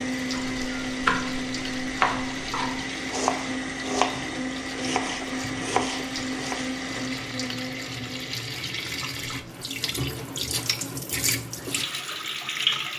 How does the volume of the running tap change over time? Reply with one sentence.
The volume of the running tap goes up.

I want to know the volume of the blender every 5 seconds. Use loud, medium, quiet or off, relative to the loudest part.
loud, loud, quiet.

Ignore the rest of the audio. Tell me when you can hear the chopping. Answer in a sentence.
The chopping can be heard from 0.3 to 6.7 s.